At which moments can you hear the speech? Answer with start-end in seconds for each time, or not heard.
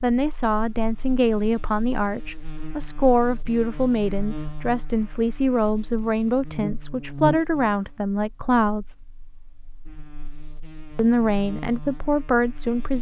0.0-9.0, 10.9-12.9.